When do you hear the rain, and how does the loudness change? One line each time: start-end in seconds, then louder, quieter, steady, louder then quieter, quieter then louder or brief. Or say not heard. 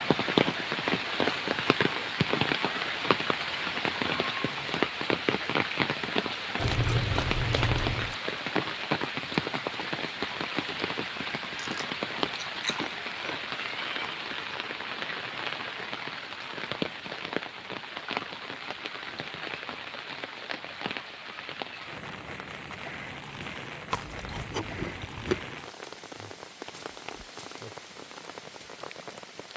0.0-29.5 quieter.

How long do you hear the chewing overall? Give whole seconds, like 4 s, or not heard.
5 s.